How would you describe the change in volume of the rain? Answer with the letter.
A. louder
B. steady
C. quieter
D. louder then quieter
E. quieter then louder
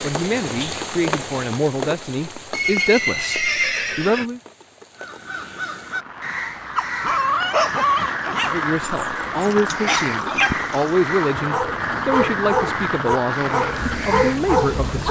E.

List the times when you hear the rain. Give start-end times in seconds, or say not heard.
0.0-15.0.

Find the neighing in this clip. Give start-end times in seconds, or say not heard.
2.5-4.2.